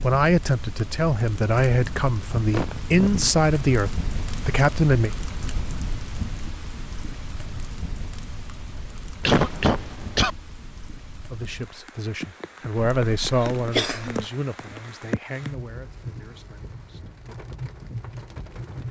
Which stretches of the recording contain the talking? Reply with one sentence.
You can hear the talking from 0.0 to 5.1 s and from 11.1 to 17.3 s.